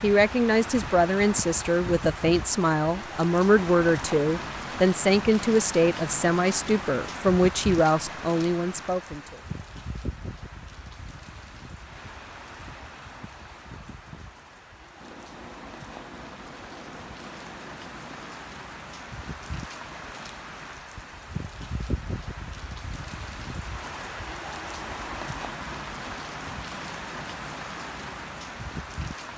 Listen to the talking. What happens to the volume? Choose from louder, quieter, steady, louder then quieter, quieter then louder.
steady.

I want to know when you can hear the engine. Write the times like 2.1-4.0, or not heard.
14.9-18.4.